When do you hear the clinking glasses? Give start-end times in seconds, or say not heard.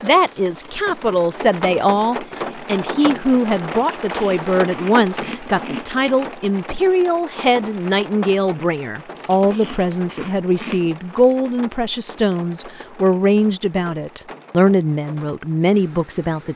not heard.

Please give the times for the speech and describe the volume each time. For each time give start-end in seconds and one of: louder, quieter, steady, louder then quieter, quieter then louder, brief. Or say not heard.
0.0-16.5 steady.